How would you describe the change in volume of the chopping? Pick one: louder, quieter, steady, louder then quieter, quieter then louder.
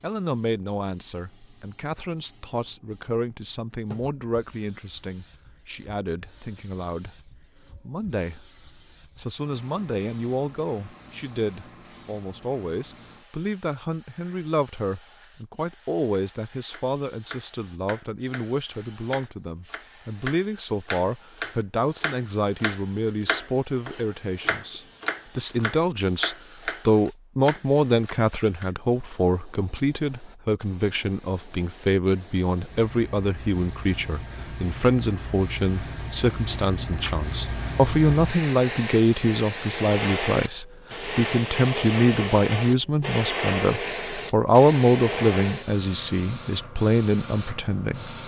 louder.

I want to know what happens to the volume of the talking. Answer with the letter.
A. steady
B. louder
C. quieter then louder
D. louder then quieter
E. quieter
B.